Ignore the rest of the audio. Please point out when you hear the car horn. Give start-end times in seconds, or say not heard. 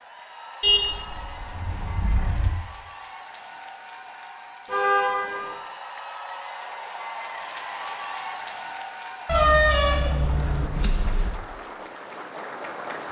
0.6-2.5, 4.7-5.5, 9.2-11.3.